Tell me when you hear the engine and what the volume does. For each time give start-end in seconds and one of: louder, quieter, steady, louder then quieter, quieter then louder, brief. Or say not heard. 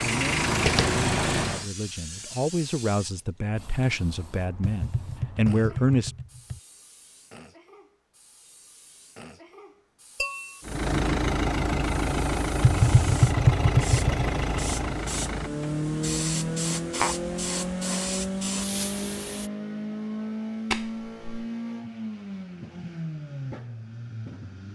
0.0-1.7 brief
10.7-24.7 quieter.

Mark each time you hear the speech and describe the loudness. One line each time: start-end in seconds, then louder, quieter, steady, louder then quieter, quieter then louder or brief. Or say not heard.
0.0-6.1 louder.